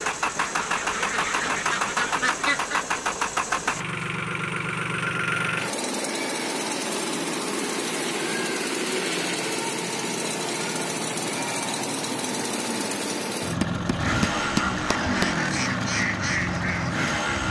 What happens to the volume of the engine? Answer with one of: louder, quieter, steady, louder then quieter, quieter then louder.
steady.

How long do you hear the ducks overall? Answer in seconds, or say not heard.
6 s.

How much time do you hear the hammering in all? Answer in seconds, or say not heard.
2 s.